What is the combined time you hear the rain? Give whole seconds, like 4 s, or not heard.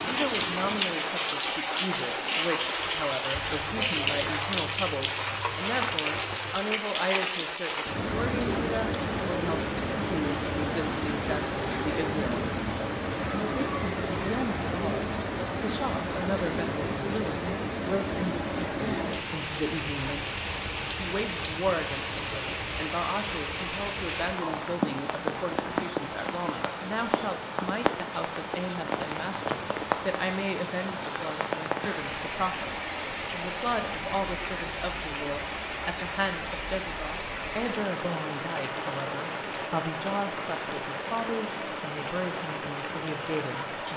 44 s.